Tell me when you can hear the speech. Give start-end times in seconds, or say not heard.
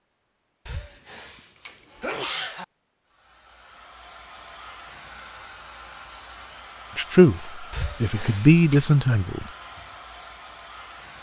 7.0-9.4.